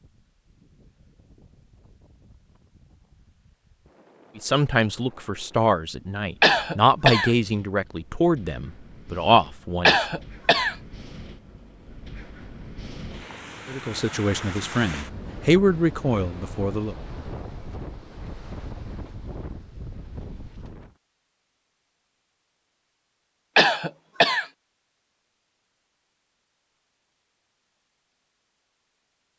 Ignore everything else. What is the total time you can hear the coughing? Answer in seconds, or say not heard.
3 s.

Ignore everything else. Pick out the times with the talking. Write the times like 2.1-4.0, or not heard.
4.3-9.9, 13.7-16.9.